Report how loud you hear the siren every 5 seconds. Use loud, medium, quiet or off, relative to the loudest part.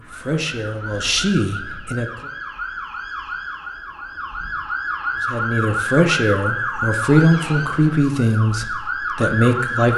medium, loud.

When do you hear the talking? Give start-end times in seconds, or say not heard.
0.0-2.1, 5.2-9.9.